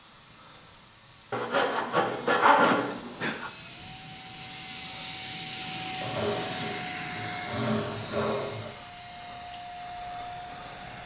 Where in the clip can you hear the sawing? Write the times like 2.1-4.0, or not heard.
1.3-3.5, 6.0-8.8.